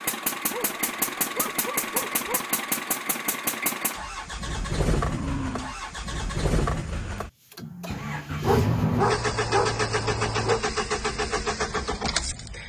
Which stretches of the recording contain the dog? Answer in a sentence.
The dog can be heard from 0.5 to 2.4 s, from 5.0 to 5.9 s and from 8.4 to 10.6 s.